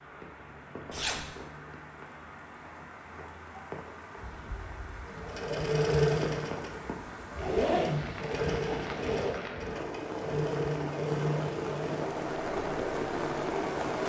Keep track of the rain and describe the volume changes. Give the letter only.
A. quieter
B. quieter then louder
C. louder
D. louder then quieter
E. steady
C.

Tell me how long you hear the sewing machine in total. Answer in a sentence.
You can hear the sewing machine for 10 seconds altogether.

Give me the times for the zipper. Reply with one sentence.
You can hear the zipper from 0.9 to 1.3 s and from 7.3 to 9.3 s.